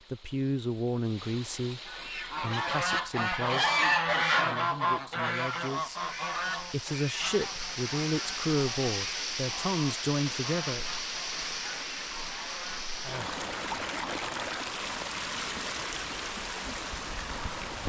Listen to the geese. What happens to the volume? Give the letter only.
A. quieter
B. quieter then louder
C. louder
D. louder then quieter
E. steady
A.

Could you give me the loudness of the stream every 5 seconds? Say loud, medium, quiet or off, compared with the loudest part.
quiet, loud, loud, loud.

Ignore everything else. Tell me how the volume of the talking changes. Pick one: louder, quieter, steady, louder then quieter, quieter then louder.
quieter then louder.